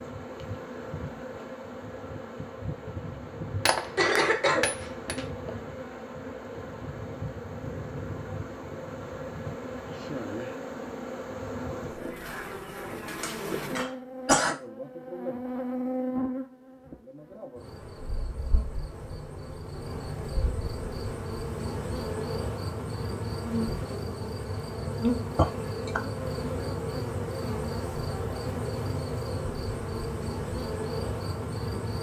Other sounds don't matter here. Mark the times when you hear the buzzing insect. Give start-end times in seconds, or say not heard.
0.0-31.9.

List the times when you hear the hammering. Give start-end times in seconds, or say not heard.
3.6-5.2.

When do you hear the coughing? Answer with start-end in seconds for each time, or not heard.
4.0-5.2, 13.1-14.6, 25.4-26.0.